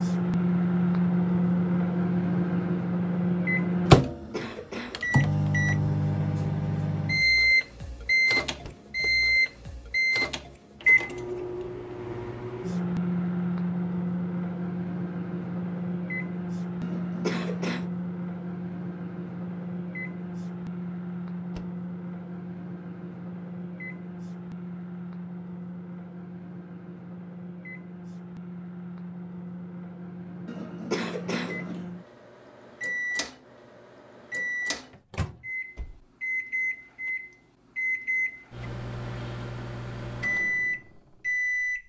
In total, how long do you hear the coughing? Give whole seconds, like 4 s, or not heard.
4 s.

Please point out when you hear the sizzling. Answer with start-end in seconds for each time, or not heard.
not heard.